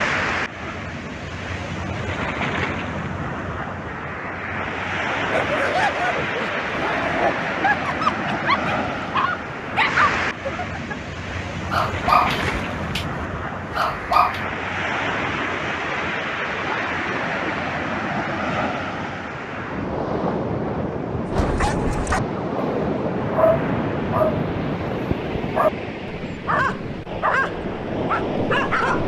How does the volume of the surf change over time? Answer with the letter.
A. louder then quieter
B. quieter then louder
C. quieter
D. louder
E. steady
E.